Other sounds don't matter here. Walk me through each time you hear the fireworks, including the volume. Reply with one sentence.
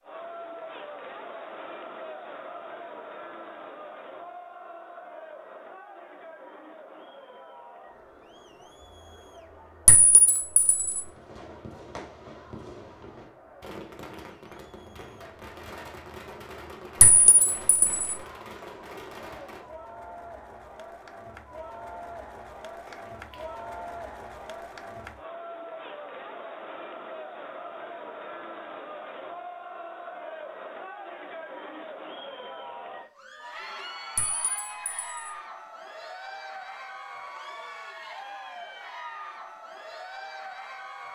You can hear the fireworks from 10.9 to 19.6 s, at a steady volume.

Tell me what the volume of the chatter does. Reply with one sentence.
The loudness of the chatter goes down, then up.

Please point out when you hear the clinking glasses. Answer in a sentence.
You can hear the clinking glasses from 9.8 to 11.1 s, from 17.0 to 18.0 s and from 34.1 to 35.4 s.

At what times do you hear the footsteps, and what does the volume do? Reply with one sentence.
You can't hear the footsteps here.